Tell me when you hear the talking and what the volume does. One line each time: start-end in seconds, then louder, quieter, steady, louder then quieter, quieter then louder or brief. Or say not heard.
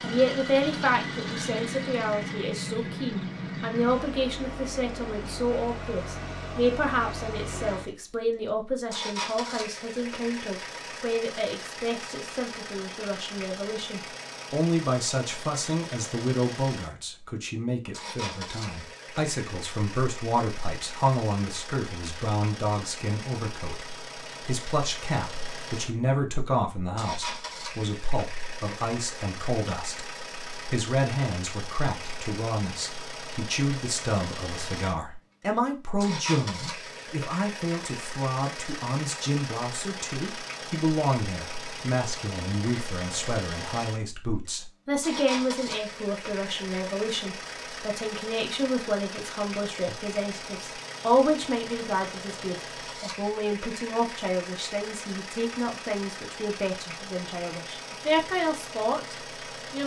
0.0-59.8 steady.